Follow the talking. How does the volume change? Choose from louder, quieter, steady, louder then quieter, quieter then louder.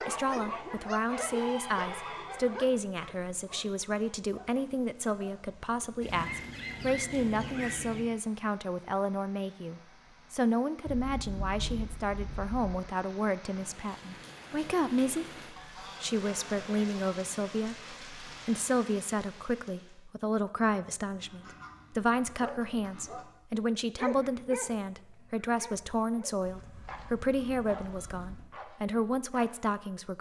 steady.